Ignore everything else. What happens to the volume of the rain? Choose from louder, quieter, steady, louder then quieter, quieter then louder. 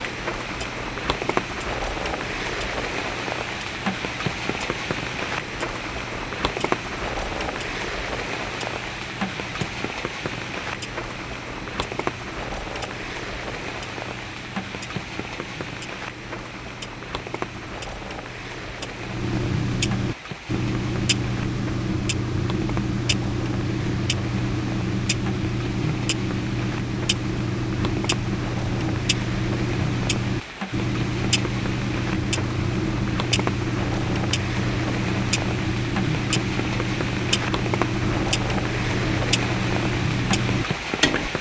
quieter then louder.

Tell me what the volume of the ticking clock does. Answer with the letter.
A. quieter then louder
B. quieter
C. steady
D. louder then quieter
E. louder
E.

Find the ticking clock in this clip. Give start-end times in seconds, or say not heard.
0.0-41.3.